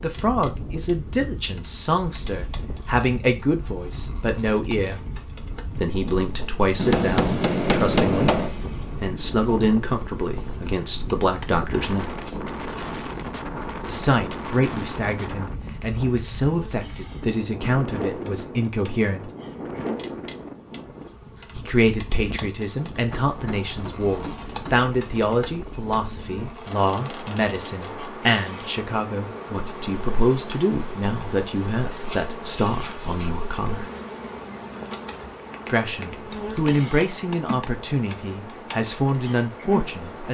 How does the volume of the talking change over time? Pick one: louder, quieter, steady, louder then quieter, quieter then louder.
steady.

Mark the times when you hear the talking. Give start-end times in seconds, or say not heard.
0.0-5.0, 5.8-12.1, 13.8-19.2, 21.6-33.9, 35.6-40.2.